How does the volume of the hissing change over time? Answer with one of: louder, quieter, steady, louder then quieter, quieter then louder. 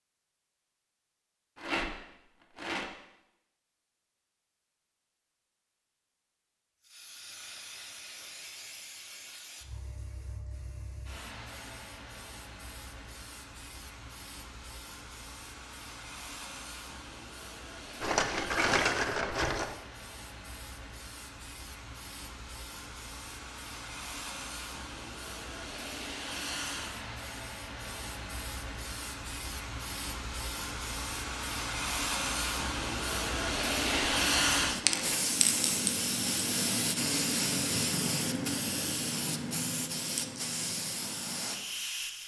louder.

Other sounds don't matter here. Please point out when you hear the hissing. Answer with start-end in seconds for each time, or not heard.
6.8-42.2.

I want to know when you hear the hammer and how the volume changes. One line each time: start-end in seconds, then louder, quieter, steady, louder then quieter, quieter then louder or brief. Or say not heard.
not heard.